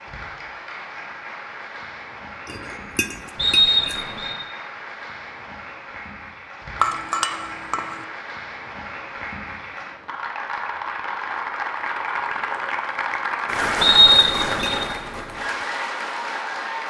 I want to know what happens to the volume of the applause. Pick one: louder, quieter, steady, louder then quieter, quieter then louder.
louder.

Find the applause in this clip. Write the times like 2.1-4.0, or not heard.
0.0-16.8.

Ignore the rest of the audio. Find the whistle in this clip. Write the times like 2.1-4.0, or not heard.
3.4-4.3, 13.8-14.8.